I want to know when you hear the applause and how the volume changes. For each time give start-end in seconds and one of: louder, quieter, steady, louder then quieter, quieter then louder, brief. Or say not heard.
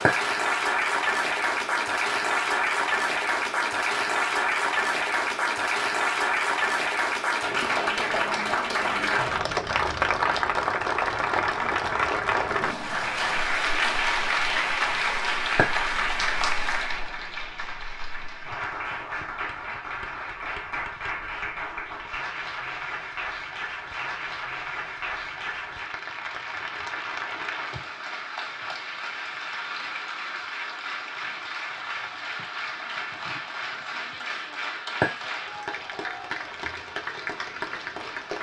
0.0-38.3 quieter.